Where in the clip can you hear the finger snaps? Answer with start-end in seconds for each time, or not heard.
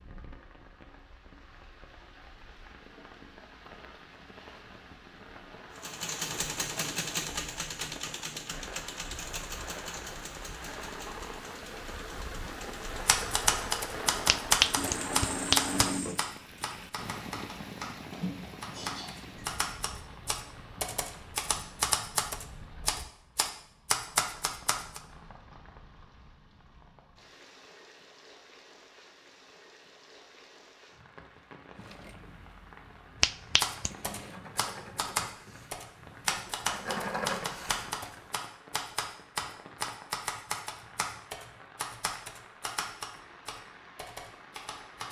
14.2-15.9, 33.2-33.9.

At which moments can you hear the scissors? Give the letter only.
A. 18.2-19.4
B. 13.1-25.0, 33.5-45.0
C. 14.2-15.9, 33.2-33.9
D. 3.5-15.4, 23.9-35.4
A.